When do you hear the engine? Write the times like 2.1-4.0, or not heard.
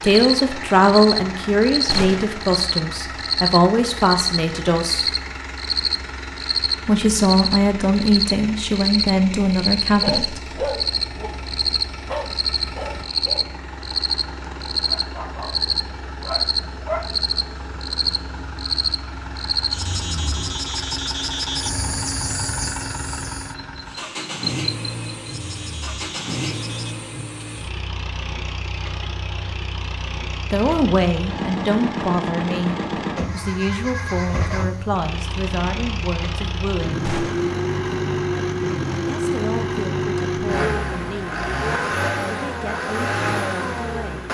0.0-44.2.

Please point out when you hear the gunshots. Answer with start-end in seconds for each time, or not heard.
1.9-2.4, 37.0-37.5.